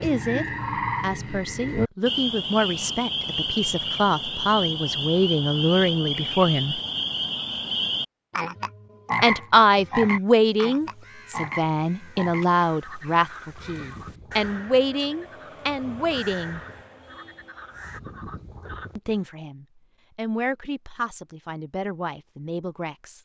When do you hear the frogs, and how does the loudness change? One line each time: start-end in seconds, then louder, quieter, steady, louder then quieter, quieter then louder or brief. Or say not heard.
0.0-19.2 quieter.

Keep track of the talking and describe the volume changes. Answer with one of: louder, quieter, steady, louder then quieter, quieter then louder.
louder then quieter.